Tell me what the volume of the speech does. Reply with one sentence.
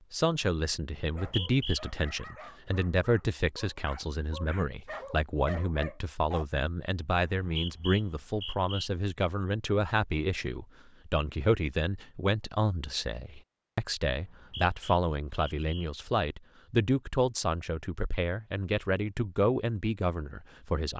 The loudness of the speech stays about the same.